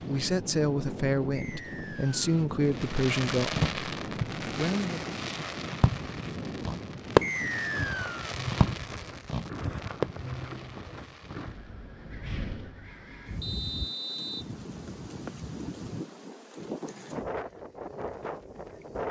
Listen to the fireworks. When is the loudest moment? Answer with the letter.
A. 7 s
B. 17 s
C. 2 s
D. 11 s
A.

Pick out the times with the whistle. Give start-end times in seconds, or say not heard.
1.4-2.3, 7.2-8.2, 13.4-14.4.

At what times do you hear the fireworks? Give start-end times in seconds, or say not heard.
2.8-11.6.